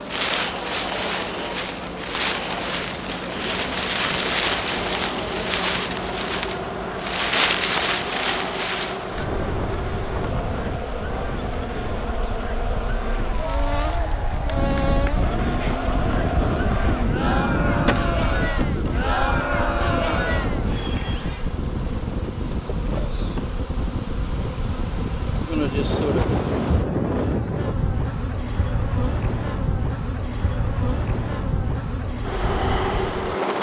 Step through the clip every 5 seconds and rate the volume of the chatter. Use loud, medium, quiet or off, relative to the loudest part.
medium, medium, medium, loud, loud, off, off.